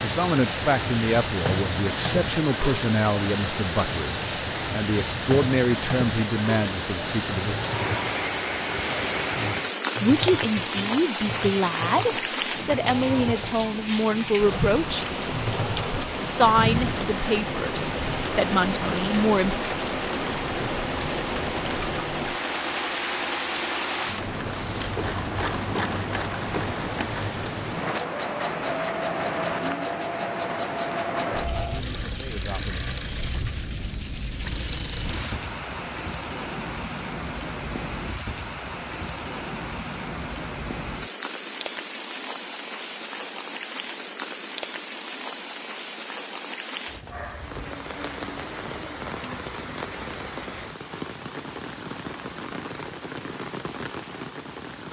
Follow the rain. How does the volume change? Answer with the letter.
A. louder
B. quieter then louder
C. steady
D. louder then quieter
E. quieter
E.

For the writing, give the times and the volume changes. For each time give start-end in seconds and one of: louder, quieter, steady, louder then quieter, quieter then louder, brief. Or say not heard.
not heard.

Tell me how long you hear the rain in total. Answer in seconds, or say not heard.
55 s.